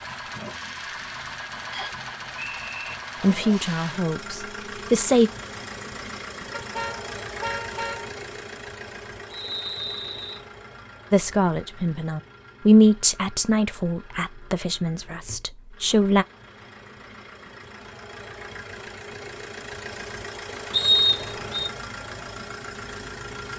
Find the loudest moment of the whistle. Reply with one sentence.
The loudest moment of the whistle is at 21 seconds.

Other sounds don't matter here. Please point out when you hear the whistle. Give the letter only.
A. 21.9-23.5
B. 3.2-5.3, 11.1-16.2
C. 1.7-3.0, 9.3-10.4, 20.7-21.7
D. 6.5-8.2
C.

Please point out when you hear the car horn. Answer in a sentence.
You can hear the car horn from 6.5 to 8.2 s.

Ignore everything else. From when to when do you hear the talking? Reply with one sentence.
The talking can be heard from 3.2 to 5.3 s and from 11.1 to 16.2 s.